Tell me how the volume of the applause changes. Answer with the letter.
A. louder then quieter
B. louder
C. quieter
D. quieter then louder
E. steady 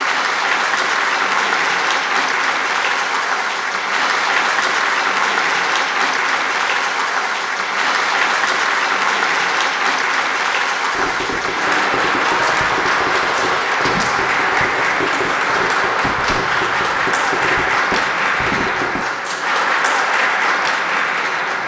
E.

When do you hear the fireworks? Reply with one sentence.
The fireworks can be heard from 10.9 to 19.0 s.